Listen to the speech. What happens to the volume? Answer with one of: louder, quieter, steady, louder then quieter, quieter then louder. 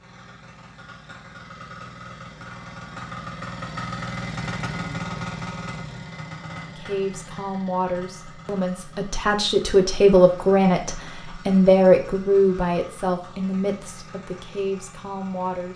louder then quieter.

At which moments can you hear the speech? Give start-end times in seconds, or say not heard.
6.8-15.7.